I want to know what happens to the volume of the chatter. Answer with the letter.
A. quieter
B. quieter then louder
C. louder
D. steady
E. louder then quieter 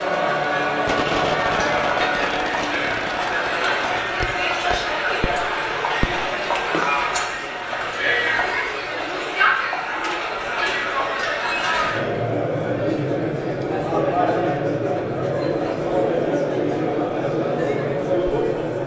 D.